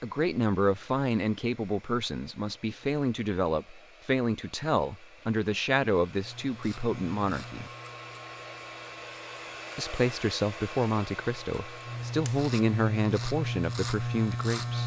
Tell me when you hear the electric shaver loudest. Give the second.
14 s.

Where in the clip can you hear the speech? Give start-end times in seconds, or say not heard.
0.0-7.7, 9.8-14.8.